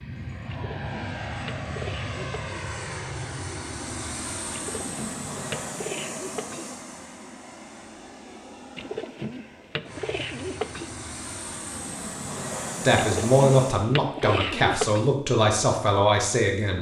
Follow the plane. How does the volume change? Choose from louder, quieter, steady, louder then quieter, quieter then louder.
quieter then louder.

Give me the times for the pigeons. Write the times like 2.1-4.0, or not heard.
0.5-2.6, 4.5-6.7, 8.8-10.9, 12.9-15.1.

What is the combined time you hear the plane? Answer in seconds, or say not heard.
14 s.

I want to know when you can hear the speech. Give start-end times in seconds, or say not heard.
12.8-16.7.